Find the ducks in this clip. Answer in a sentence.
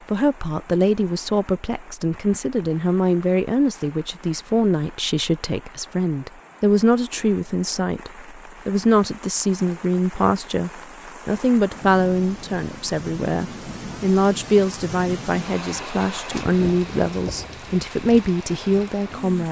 The ducks can't be heard in this clip.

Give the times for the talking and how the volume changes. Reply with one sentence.
You can hear the talking from 0.1 to 19.4 s, at a steady volume.